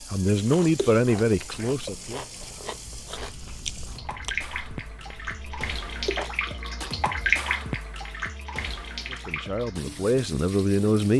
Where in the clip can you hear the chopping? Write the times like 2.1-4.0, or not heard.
not heard.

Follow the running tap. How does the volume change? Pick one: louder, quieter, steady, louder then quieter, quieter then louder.
louder then quieter.